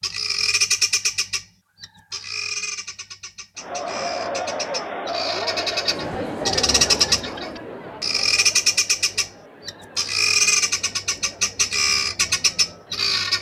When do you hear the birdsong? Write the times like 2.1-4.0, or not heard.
0.0-13.3.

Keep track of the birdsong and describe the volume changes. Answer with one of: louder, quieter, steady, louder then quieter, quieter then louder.
quieter then louder.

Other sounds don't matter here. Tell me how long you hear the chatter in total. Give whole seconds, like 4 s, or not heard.
10 s.